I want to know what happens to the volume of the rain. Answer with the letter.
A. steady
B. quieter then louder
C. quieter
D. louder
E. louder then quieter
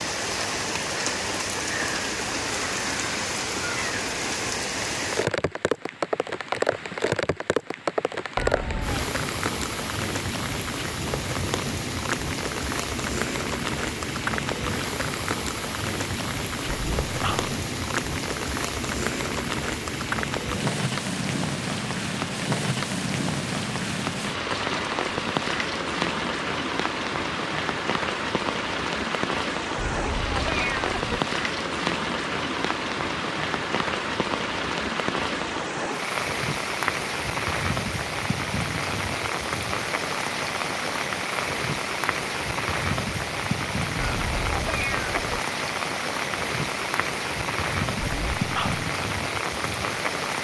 A.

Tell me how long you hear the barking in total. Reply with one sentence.
The barking can be heard for 2 seconds in total.